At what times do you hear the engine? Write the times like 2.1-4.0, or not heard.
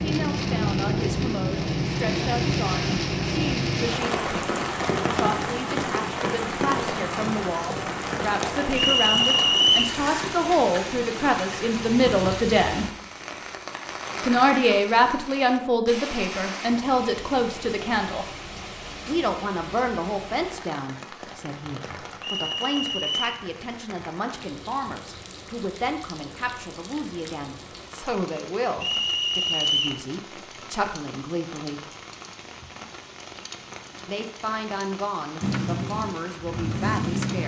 35.4-37.4.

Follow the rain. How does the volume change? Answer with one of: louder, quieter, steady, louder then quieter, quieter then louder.
quieter.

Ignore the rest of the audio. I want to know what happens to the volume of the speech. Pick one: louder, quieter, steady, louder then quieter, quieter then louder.
louder then quieter.